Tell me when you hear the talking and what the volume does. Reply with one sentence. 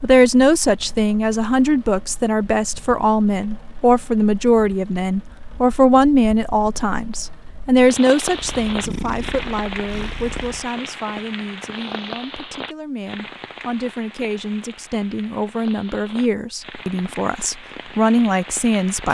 The talking can be heard from 0.0 to 19.0 s, getting quieter then louder.